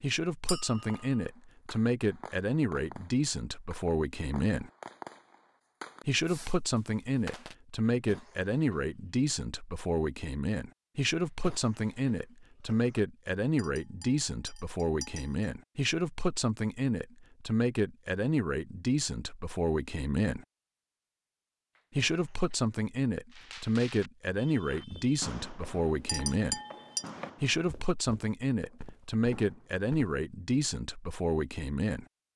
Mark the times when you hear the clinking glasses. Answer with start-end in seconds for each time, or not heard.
0.5-1.2, 13.6-15.5, 26.1-27.1.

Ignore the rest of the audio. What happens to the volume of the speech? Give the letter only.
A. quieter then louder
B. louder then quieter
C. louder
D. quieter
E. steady
E.